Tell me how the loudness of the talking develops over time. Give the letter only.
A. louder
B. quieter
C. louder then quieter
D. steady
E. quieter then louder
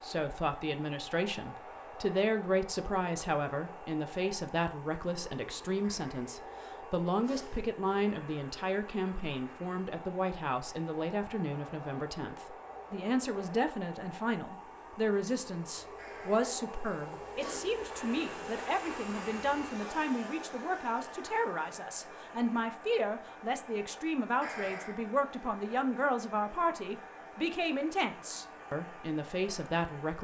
D.